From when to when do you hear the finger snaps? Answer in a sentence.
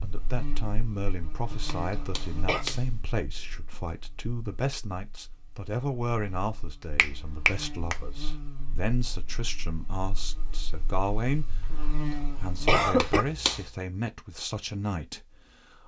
The finger snaps can be heard from 1.6 to 3.1 s, from 7.0 to 8.0 s and from 12.9 to 13.7 s.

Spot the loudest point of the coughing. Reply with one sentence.
The volume of the coughing peaks at 13 seconds.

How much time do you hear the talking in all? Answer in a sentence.
The talking can be heard for 16 seconds in total.